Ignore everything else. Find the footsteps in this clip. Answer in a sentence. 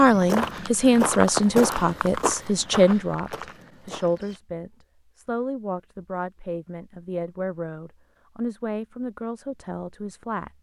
You can hear the footsteps from 0.0 to 4.4 s.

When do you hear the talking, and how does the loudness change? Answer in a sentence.
The talking can be heard from 0.0 to 10.5 s, getting quieter.